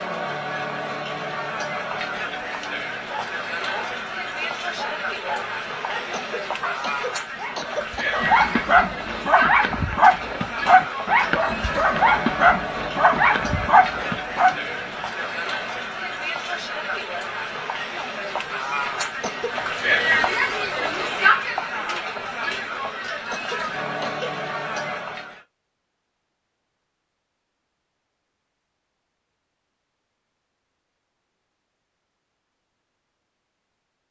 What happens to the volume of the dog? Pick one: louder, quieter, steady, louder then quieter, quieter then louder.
louder.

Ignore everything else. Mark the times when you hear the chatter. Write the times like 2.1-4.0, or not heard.
0.0-25.4.